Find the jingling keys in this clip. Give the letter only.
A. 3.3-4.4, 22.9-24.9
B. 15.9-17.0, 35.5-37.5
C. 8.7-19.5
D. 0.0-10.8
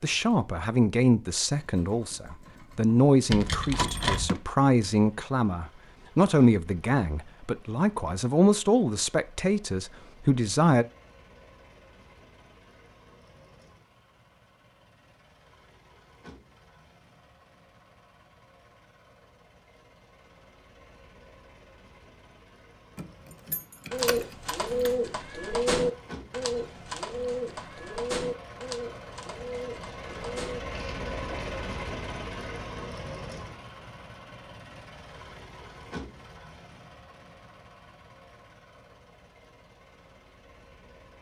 A.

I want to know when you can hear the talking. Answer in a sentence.
You can hear the talking from 0.0 to 10.8 s.